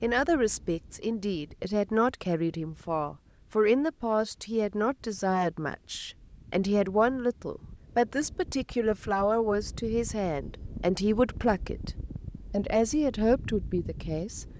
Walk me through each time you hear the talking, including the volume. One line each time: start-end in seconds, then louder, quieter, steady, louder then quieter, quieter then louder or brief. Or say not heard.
0.0-11.9 steady
12.5-14.4 brief.